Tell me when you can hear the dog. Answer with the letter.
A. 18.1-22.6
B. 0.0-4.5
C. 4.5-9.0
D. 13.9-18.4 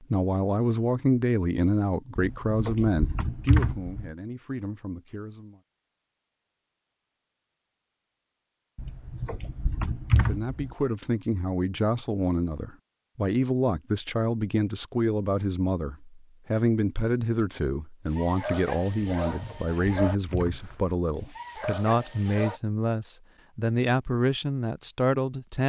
A.